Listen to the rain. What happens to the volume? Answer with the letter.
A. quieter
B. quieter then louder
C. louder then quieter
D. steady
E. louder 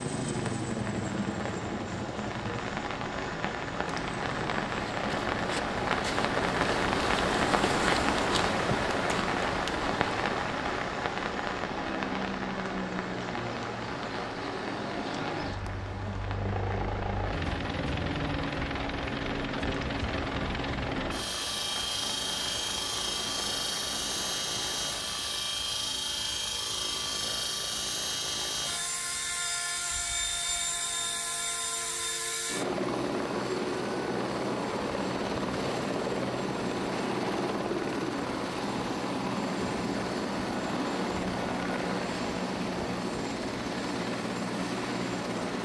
C.